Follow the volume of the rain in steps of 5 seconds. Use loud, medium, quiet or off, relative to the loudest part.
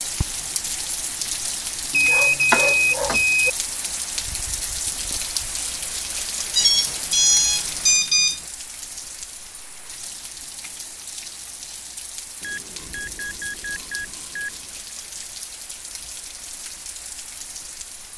loud, loud, medium, medium.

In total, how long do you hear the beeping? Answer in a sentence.
You can hear the beeping for 6 seconds altogether.